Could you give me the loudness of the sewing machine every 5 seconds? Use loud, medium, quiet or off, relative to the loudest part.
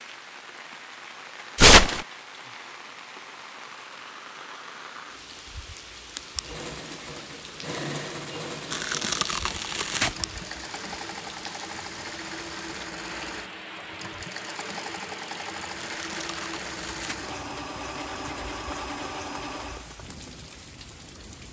off, loud, loud, loud, off.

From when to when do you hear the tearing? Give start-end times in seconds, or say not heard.
1.6-2.0, 8.7-10.2, 15.8-17.1.